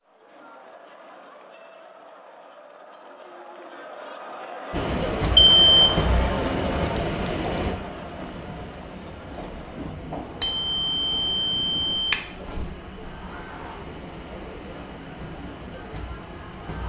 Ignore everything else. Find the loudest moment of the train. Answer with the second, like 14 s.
6 s.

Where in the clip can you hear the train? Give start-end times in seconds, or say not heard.
4.7-16.8.